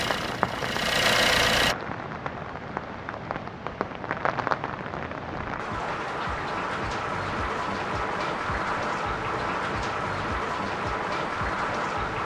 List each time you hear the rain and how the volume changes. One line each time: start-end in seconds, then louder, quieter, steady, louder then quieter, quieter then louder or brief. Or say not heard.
0.0-12.1 steady.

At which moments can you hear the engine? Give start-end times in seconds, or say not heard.
0.0-1.8.